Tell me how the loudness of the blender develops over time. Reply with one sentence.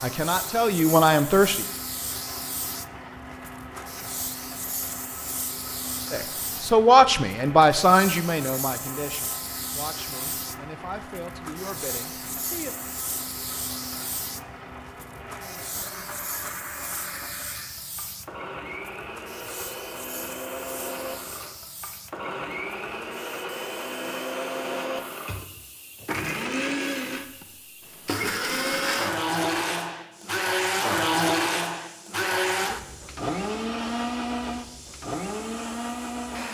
The volume of the blender goes up.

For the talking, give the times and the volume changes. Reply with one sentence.
The talking can be heard briefly from 0.0 to 1.6 s; and from 6.1 to 12.8 s, getting quieter.